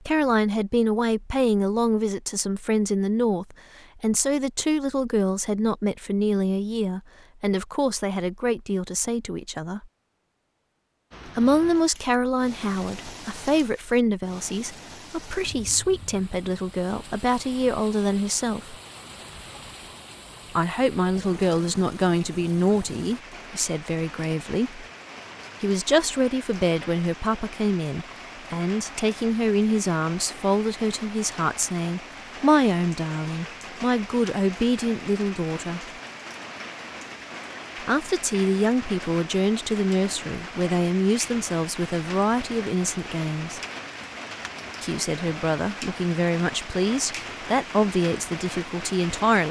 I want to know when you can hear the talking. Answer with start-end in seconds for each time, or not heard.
0.1-9.8, 11.2-18.8, 20.6-24.9, 25.6-35.9, 37.8-43.6, 44.8-49.4.